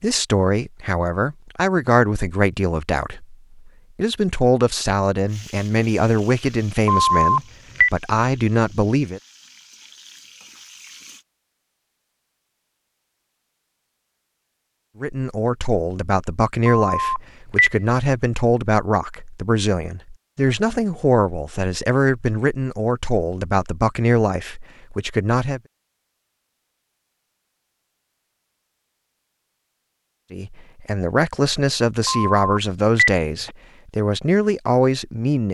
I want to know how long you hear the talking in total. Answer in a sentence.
You can hear the talking for 25 seconds altogether.